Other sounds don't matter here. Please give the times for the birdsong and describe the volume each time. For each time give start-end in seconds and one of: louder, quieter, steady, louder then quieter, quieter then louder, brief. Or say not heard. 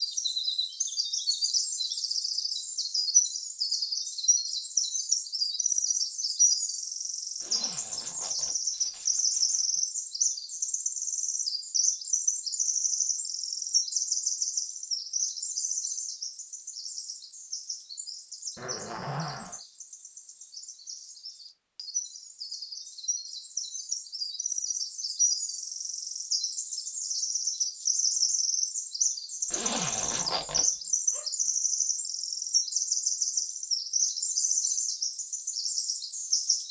0.0-36.6 quieter then louder.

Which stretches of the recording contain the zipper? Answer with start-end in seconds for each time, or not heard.
7.4-9.8, 18.6-19.6, 29.5-30.6.